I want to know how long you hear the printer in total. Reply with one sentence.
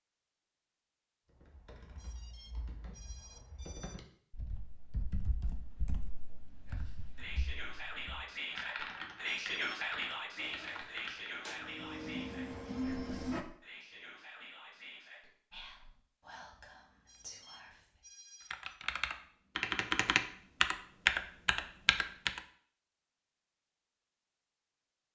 The printer can be heard for 3 seconds in total.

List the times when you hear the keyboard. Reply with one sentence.
You can hear the keyboard from 1.3 to 11.5 s and from 18.5 to 22.4 s.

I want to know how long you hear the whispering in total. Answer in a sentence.
You can hear the whispering for 11 seconds altogether.